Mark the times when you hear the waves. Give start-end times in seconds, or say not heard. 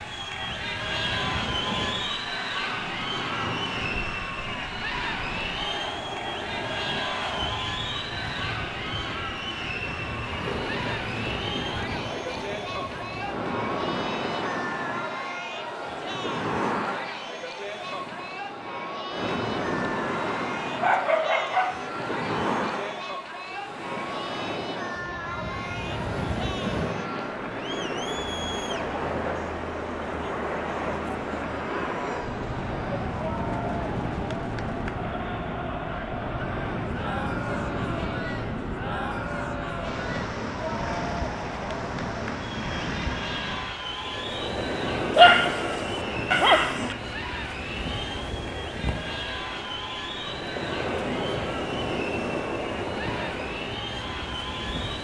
0.0-54.9.